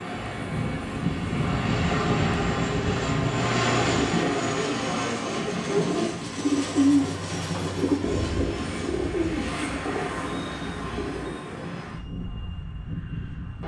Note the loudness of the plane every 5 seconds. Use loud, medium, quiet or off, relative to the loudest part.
loud, medium, medium.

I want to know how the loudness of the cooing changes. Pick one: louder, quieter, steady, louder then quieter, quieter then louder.
louder then quieter.